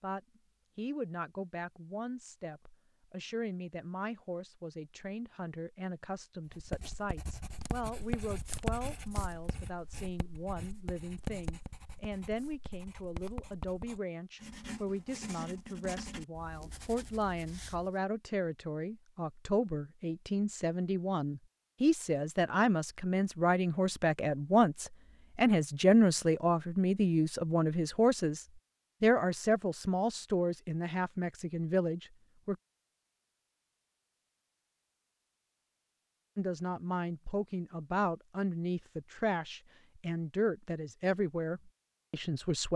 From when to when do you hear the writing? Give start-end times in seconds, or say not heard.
6.5-17.9.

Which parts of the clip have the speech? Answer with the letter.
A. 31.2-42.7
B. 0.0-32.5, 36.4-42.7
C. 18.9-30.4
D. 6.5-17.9
B.